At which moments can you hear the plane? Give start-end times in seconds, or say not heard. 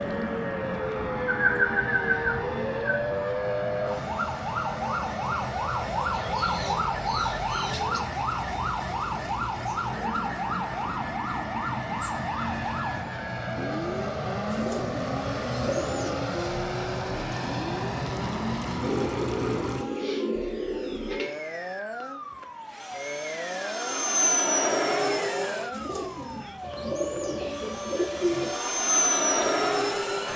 0.0-30.3.